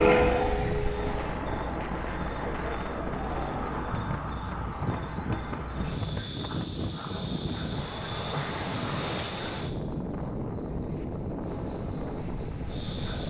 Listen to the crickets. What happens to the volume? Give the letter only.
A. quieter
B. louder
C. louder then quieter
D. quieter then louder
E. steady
E.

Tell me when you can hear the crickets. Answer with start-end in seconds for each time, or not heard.
0.0-13.2.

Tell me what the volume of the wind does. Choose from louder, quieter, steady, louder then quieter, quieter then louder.
steady.